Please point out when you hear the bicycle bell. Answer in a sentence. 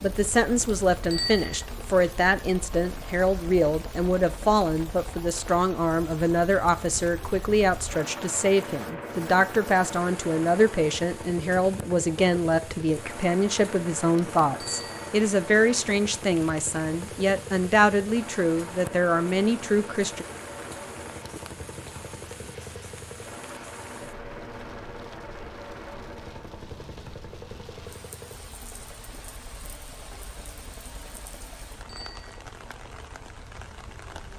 The bicycle bell can be heard from 1.1 to 1.6 s, from 14.6 to 15.1 s and from 31.9 to 32.4 s.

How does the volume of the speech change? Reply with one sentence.
The volume of the speech stays about the same.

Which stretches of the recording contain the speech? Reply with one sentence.
The speech can be heard from 0.0 to 20.2 s.